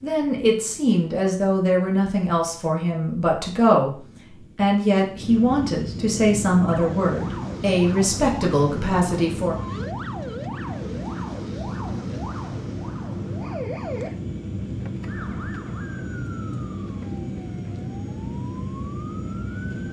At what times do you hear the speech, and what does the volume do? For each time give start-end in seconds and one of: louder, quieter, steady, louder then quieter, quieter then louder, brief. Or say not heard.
0.0-9.6 steady.